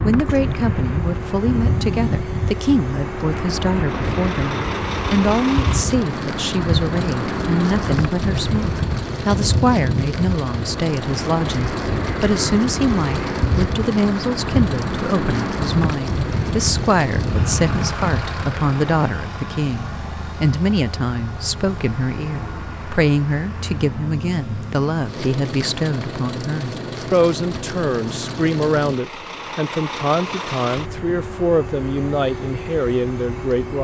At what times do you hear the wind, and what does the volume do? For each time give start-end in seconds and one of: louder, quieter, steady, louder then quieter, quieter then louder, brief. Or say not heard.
0.0-19.1 steady.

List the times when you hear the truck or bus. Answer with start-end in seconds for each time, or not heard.
0.1-33.7.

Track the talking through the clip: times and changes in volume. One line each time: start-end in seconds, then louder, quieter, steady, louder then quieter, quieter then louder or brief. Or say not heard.
0.1-33.7 steady.